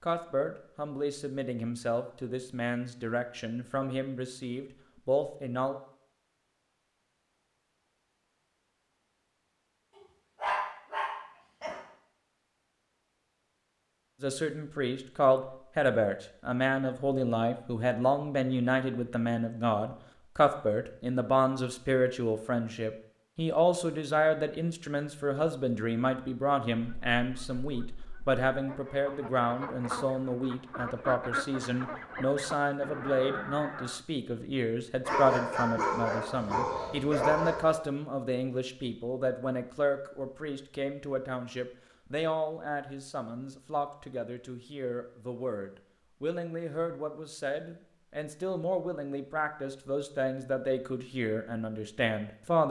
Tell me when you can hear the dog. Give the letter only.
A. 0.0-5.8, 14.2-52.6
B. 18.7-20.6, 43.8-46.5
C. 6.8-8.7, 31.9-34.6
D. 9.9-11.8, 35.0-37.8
D.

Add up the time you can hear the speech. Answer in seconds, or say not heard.
44 s.